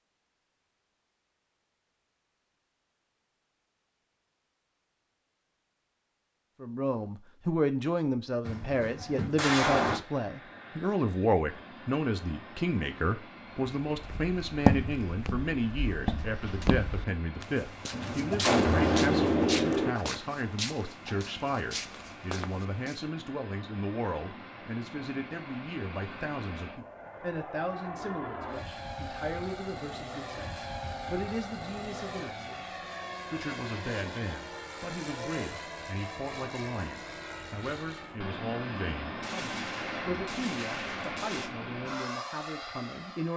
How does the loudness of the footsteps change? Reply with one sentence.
The volume of the footsteps goes down.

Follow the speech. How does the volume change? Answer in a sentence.
The loudness of the speech goes down.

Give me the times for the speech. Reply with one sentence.
The speech can be heard from 6.6 to 43.3 s.